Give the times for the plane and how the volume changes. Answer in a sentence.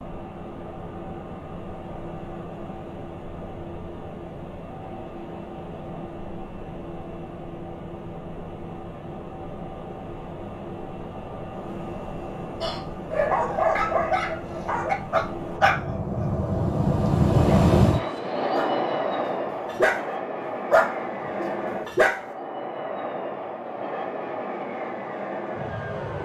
You can hear the plane from 0.0 to 26.2 s, getting louder then quieter.